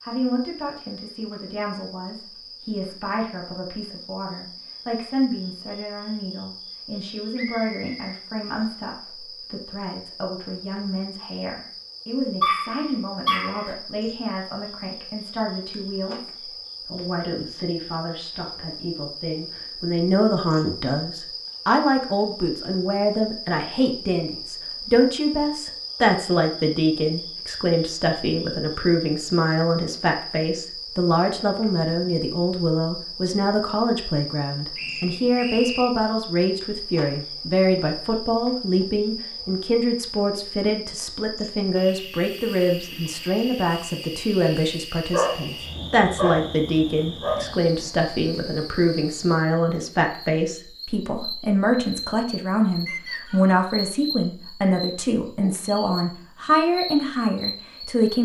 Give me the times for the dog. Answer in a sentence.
The dog can be heard from 12.4 to 13.7 s and from 45.1 to 47.8 s.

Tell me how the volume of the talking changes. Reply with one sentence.
The loudness of the talking goes up.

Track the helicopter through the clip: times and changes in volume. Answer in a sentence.
You can't hear the helicopter here.